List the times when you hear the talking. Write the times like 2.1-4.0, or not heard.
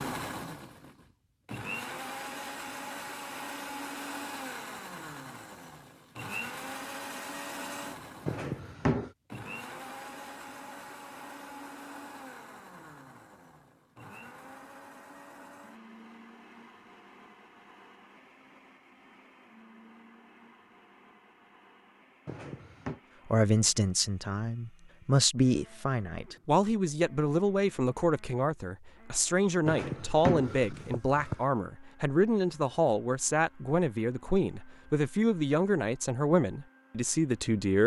23.2-37.8.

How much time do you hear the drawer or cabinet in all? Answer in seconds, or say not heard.
3 s.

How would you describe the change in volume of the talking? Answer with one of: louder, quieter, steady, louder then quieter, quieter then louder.
steady.